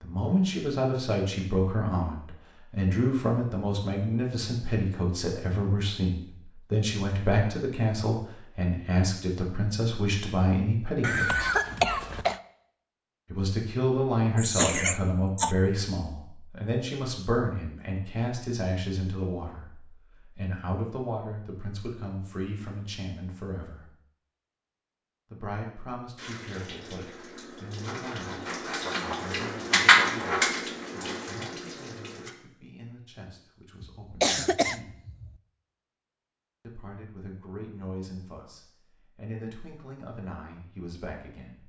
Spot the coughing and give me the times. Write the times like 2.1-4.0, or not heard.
11.0-12.4, 14.3-15.6, 33.8-35.4.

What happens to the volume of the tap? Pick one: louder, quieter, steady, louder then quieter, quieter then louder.
louder then quieter.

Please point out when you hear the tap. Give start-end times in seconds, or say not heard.
26.1-32.3.